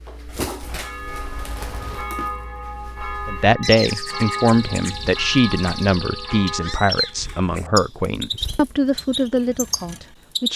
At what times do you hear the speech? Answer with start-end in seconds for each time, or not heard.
3.2-10.5.